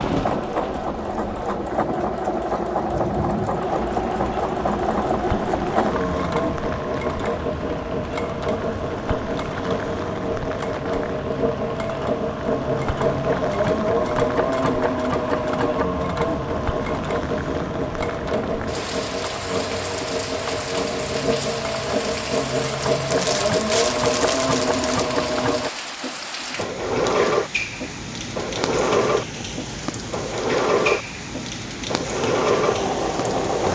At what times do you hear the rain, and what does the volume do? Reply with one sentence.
You can hear the rain from 0.0 to 33.6 s, at a steady volume.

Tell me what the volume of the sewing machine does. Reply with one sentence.
The volume of the sewing machine stays about the same.